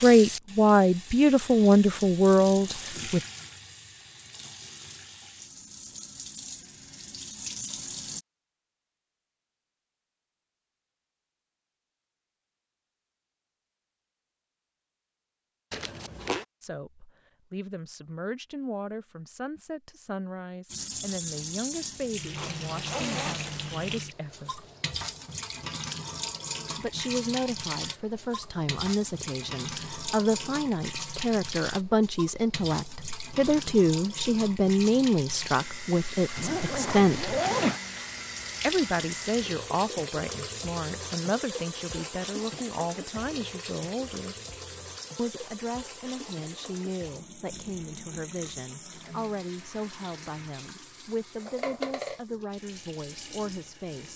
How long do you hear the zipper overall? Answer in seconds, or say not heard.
4 s.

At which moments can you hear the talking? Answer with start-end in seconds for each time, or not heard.
0.0-3.2, 16.6-24.6, 26.8-37.4, 38.6-44.4, 45.1-54.1.